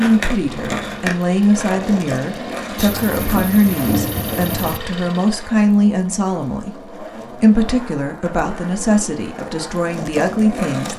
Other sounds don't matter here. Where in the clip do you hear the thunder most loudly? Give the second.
4 s.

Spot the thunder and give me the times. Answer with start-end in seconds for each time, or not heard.
2.8-4.8.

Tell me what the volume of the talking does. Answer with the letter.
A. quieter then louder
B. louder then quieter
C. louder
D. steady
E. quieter
D.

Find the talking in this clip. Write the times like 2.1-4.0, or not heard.
0.0-10.9.